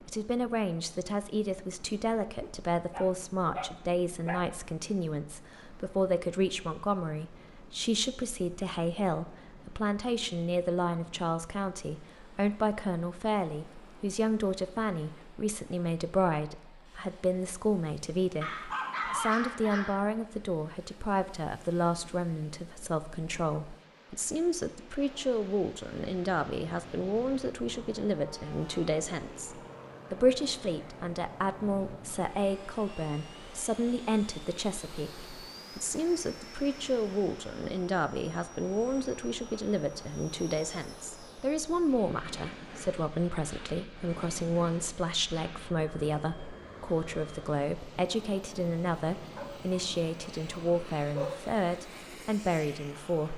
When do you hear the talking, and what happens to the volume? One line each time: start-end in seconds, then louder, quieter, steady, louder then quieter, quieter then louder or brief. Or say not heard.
0.1-53.3 steady.